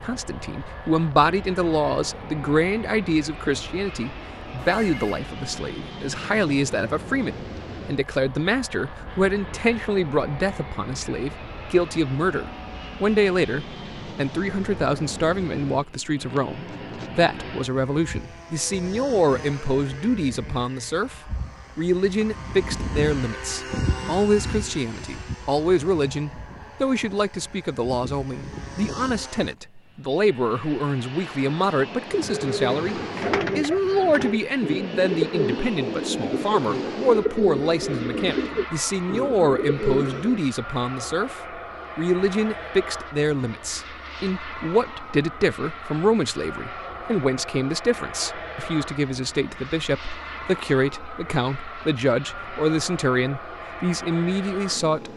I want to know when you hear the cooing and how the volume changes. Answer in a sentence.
The cooing can be heard from 32.0 to 40.5 s, at a steady volume.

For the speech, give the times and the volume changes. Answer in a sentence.
The speech can be heard from 0.0 to 55.1 s, at a steady volume.